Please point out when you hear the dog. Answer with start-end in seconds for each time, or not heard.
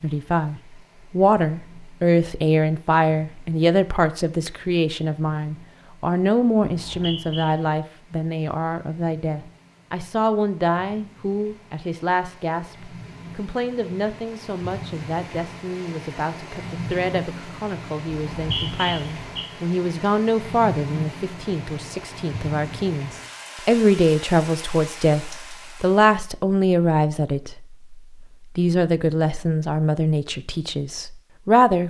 not heard.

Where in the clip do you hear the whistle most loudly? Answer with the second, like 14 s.
19 s.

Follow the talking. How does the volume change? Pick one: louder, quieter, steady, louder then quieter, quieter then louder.
quieter then louder.